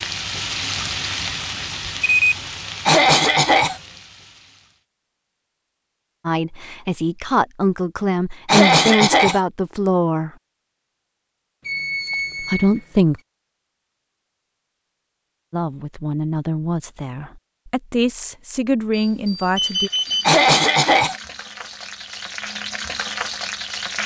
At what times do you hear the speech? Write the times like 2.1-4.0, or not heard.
6.2-10.3, 12.4-13.2, 15.5-19.9.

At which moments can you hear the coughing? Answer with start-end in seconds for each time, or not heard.
2.9-3.8, 8.4-9.4, 20.2-21.1.